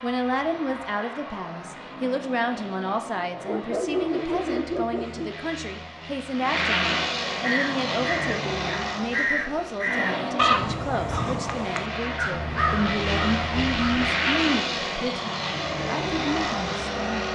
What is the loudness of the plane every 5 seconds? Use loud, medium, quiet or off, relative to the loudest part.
medium, loud, loud, loud.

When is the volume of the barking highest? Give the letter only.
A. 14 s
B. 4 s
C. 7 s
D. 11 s
B.